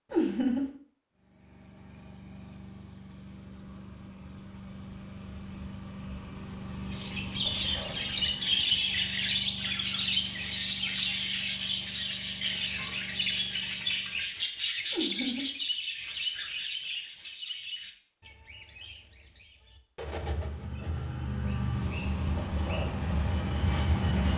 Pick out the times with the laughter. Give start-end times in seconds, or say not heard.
0.1-0.7, 14.9-15.5.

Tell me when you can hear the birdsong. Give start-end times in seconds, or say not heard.
6.9-24.3.